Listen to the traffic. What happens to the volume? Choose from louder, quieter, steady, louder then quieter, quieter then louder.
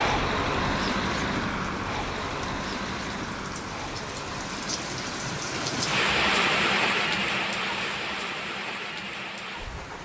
quieter.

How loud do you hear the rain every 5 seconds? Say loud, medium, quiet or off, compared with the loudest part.
medium, loud.